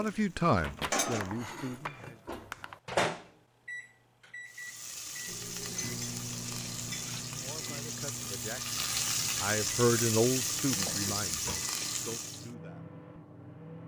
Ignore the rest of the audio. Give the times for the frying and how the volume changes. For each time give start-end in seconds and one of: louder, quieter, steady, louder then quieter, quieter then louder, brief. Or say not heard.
0.0-2.0 brief
4.5-12.5 louder.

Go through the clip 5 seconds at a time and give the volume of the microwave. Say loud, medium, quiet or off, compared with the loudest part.
loud, medium, medium.